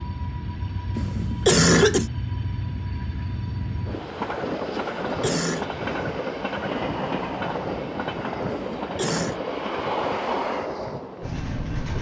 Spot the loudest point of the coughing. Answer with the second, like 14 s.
2 s.